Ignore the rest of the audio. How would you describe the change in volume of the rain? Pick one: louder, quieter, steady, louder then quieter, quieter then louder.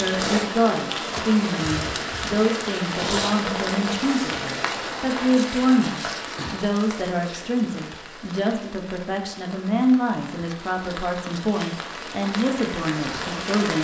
quieter then louder.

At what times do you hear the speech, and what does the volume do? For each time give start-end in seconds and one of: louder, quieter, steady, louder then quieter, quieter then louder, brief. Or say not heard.
0.0-13.7 steady.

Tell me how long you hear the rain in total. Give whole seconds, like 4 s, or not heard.
14 s.